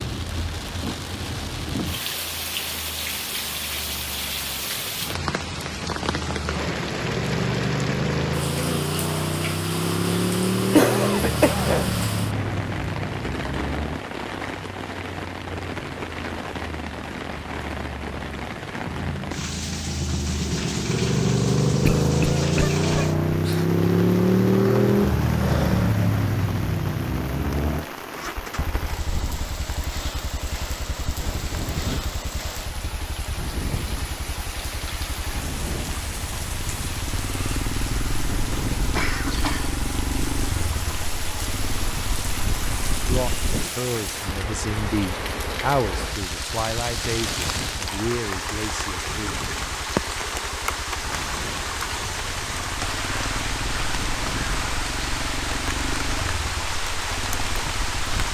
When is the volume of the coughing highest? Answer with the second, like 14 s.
11 s.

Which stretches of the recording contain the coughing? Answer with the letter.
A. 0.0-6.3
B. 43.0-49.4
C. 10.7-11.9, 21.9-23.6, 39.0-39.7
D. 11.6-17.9
C.